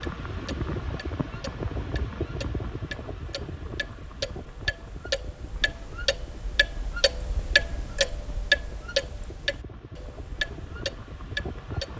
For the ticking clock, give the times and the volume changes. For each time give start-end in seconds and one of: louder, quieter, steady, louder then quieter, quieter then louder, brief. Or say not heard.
0.0-11.9 louder then quieter.